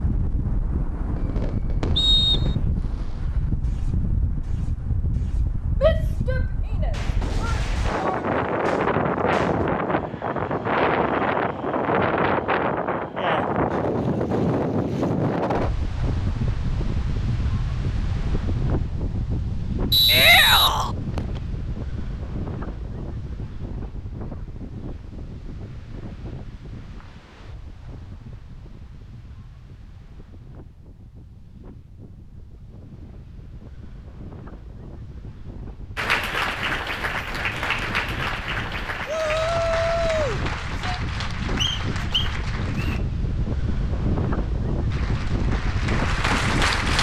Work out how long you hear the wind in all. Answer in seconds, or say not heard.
47 s.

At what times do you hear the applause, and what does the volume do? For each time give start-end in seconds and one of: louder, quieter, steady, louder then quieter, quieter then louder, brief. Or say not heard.
36.0-43.0 quieter
44.9-46.9 brief.